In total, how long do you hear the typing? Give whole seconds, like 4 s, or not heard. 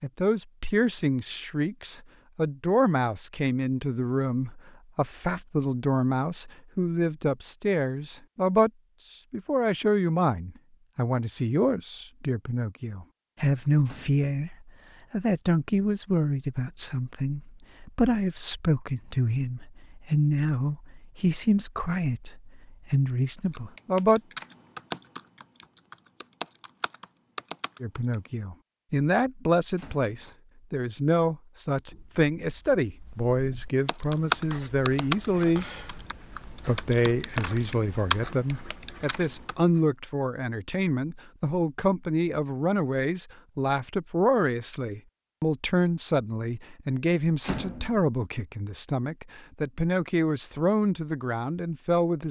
10 s.